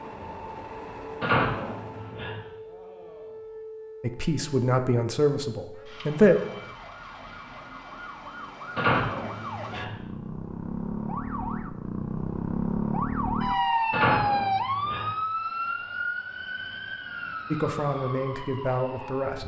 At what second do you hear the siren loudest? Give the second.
14 s.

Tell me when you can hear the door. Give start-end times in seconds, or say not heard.
1.2-2.4, 8.8-9.9, 13.9-15.2.